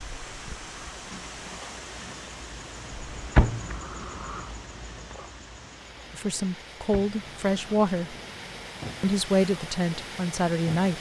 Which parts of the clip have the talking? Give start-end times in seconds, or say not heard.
6.1-8.2, 9.0-10.9.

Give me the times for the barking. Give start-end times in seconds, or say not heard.
not heard.